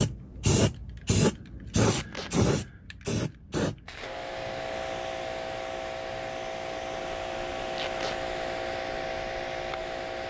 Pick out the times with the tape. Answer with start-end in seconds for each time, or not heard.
1.9-2.3, 7.7-8.2.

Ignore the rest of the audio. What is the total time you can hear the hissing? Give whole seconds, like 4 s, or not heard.
10 s.